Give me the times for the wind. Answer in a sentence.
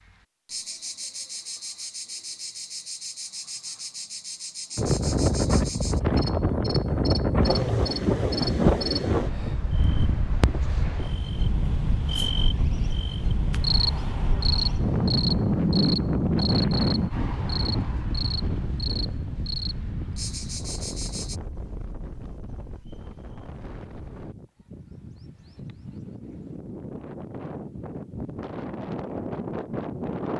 The wind can be heard from 4.8 to 30.3 s.